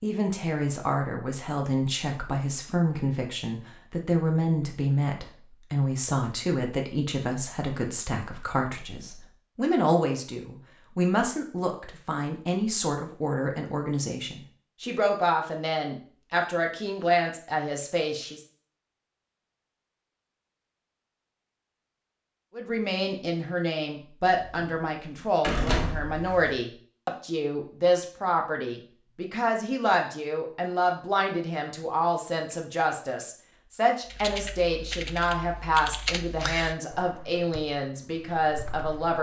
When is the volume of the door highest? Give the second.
26 s.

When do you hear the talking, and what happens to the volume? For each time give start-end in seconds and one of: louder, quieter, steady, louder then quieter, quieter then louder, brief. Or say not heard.
0.0-18.4 steady
22.6-39.1 steady.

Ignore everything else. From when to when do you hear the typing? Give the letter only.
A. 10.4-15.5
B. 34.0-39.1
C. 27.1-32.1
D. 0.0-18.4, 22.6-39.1
B.